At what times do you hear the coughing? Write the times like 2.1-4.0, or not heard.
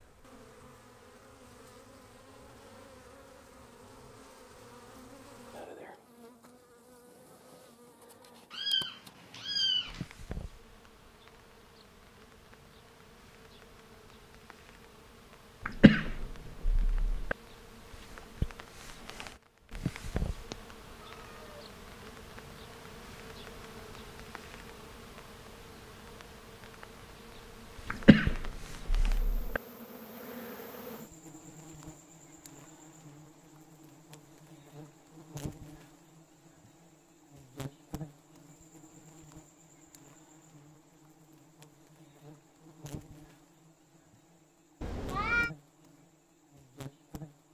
15.7-17.4, 27.9-29.6.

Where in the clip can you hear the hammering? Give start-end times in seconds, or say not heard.
not heard.